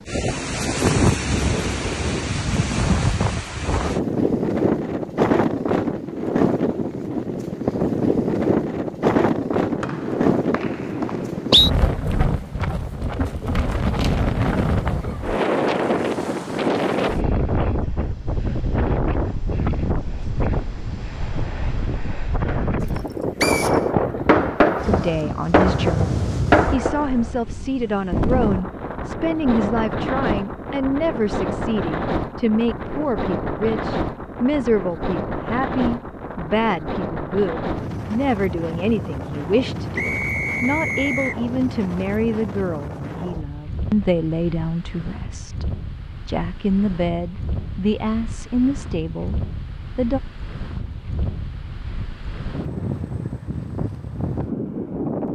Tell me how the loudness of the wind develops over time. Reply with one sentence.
The loudness of the wind goes down.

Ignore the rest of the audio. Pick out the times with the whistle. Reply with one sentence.
The whistle can be heard from 9.8 to 11.7 s, from 23.4 to 23.8 s and from 40.0 to 41.4 s.